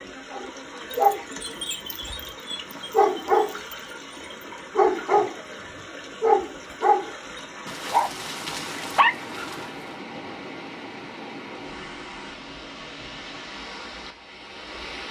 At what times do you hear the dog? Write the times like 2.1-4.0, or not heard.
0.3-5.3, 6.2-9.7.